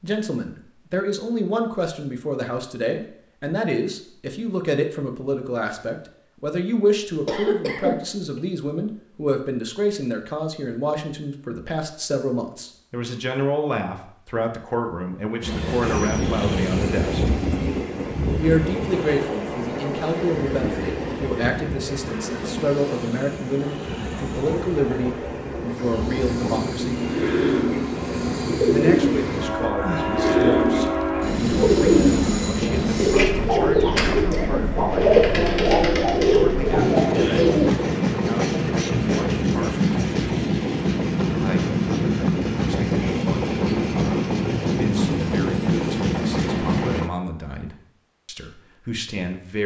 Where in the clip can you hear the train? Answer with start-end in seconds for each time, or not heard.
15.4-47.1.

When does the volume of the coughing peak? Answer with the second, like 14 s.
8 s.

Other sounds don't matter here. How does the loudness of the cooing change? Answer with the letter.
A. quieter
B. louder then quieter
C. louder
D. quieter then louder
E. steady
C.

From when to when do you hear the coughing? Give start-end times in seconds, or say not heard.
7.2-8.4, 34.1-34.6.